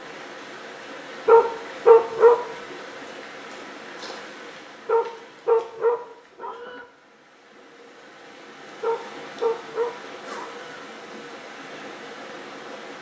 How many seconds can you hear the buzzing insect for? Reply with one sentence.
You can't hear the buzzing insect here.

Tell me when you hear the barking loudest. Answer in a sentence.
The loudest moment of the barking is at 2 seconds.